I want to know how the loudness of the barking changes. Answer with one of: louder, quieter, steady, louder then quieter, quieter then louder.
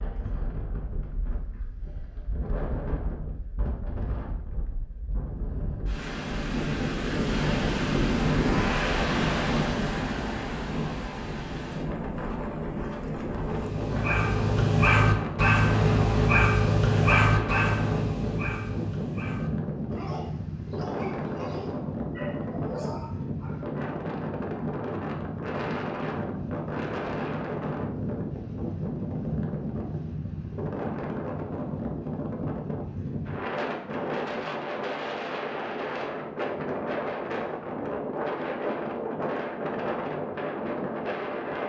quieter.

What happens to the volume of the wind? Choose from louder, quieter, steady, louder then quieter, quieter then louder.
steady.